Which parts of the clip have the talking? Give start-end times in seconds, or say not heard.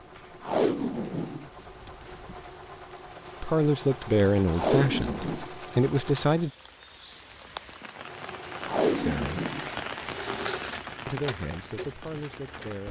3.4-6.5, 8.9-9.4, 11.1-12.8.